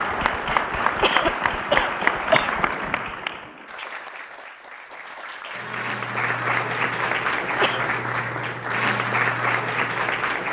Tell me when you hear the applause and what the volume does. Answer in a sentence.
You can hear the applause from 0.0 to 10.4 s, getting quieter then louder.